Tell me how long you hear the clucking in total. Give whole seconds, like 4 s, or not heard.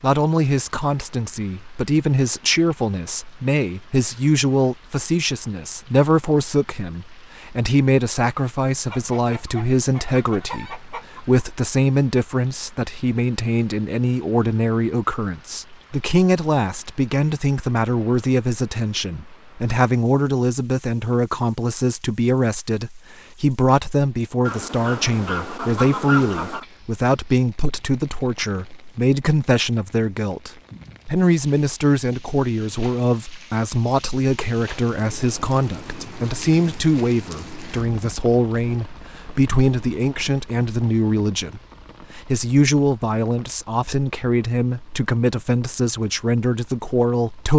5 s.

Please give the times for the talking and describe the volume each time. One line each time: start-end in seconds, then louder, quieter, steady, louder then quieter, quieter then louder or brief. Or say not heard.
0.0-47.5 steady.